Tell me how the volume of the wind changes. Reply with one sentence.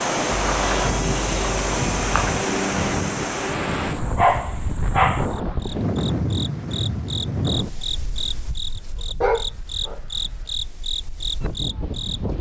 The loudness of the wind goes down.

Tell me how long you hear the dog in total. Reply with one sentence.
You can hear the dog for 5 seconds altogether.